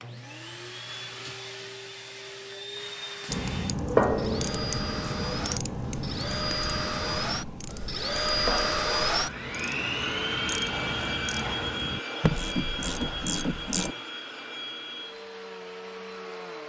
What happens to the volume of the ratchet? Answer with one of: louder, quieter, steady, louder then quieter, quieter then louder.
quieter then louder.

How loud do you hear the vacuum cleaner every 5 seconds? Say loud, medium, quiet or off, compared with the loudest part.
medium, loud, loud, medium.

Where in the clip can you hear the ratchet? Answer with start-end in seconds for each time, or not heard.
3.2-13.9.